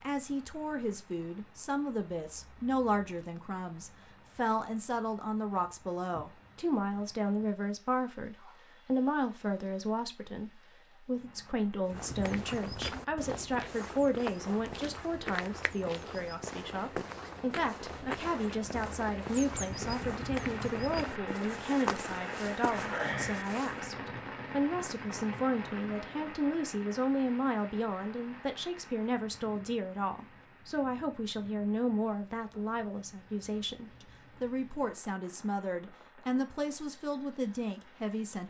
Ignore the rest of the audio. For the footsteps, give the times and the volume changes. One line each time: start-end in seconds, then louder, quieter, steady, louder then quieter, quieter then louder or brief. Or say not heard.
11.8-23.9 steady.